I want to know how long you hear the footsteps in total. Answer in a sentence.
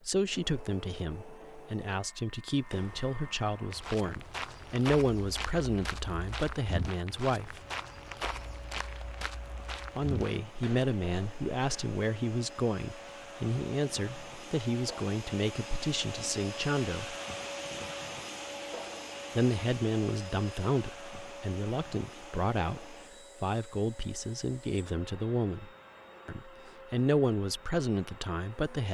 You can hear the footsteps for 9 seconds altogether.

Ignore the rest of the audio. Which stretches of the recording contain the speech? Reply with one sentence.
You can hear the speech from 0.1 to 7.6 s, from 9.9 to 17.1 s and from 19.4 to 28.8 s.